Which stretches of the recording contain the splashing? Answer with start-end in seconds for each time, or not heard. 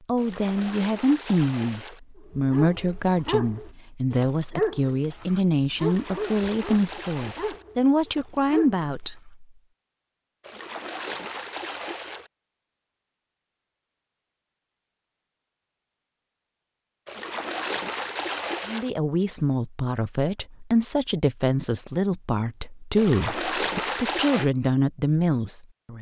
0.1-2.0, 5.8-7.7, 10.4-12.3, 17.1-18.9, 22.9-24.5.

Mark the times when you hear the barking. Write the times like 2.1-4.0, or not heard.
2.4-8.8.